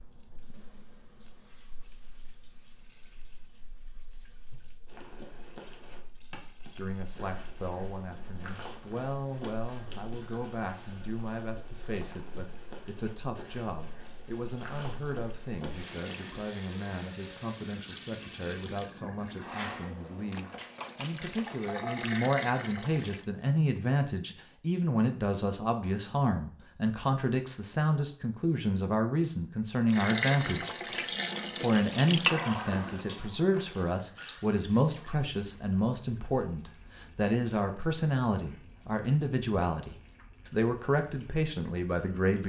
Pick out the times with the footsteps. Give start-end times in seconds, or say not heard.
4.8-16.2.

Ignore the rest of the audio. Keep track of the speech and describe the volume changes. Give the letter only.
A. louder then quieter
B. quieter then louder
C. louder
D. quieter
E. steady
C.